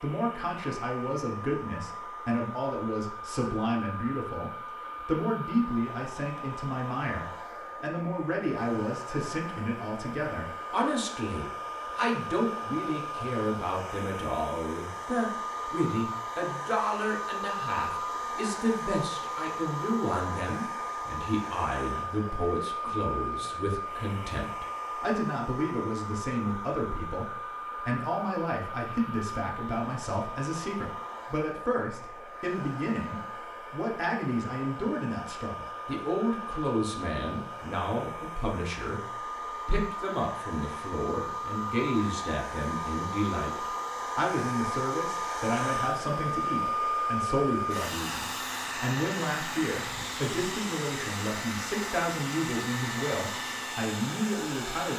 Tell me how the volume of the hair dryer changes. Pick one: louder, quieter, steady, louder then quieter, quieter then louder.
louder.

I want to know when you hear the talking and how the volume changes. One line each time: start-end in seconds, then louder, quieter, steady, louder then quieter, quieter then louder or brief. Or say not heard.
0.0-39.0 steady
39.6-54.9 steady.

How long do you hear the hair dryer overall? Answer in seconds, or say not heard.
55 s.